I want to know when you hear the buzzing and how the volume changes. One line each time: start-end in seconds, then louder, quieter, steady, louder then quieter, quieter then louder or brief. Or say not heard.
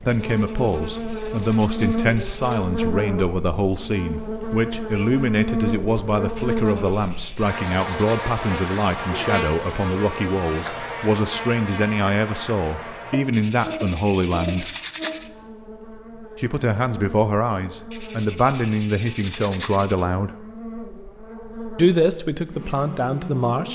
0.0-23.7 quieter.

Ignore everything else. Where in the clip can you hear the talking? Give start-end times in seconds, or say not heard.
0.0-14.7, 16.4-20.3, 21.8-23.7.